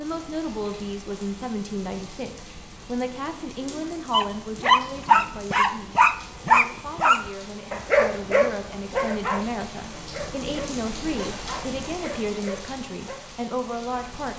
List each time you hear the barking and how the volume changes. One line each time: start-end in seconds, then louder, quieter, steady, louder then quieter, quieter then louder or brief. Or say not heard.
3.7-13.3 quieter.